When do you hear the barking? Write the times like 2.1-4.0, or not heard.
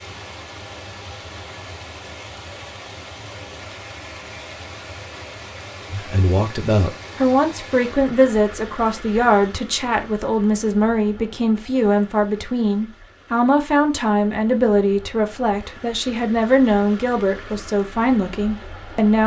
not heard.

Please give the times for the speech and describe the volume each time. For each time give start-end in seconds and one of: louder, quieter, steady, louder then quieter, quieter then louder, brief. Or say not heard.
5.9-19.2 steady.